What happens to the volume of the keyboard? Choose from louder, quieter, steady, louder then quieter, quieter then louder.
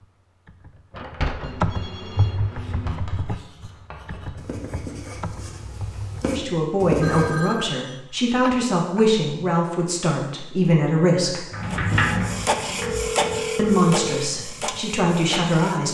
louder then quieter.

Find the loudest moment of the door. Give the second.
12 s.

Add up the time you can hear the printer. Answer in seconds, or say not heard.
4 s.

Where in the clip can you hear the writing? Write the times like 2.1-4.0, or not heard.
2.5-7.3.